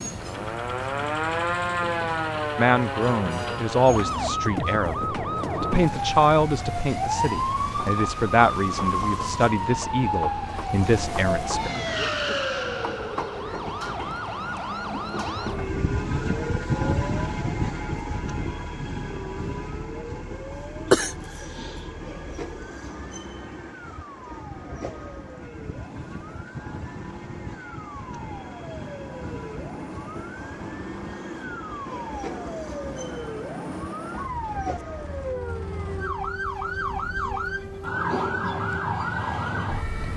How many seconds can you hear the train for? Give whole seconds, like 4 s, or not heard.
40 s.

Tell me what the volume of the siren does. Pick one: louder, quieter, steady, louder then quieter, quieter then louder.
quieter then louder.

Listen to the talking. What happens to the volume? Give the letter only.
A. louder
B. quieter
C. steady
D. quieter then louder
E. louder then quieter
C.